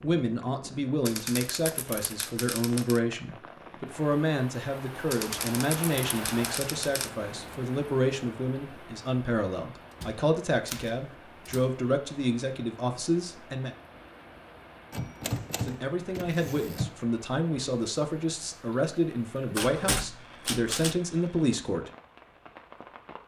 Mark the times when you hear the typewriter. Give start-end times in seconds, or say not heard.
1.1-3.0, 5.1-7.1, 10.0-11.7, 14.9-16.9, 19.6-21.0.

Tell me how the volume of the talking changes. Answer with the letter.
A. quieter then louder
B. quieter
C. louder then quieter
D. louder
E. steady
E.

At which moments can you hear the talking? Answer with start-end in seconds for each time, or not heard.
0.0-13.7, 15.6-21.9.